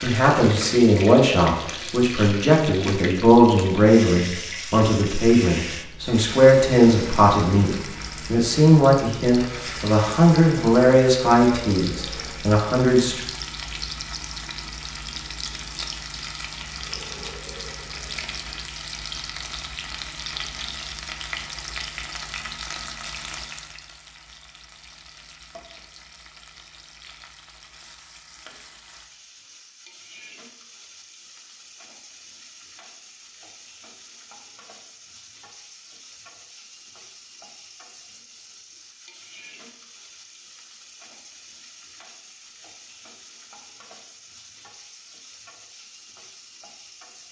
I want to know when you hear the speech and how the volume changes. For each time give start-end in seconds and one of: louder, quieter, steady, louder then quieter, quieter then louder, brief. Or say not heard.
0.0-13.2 steady.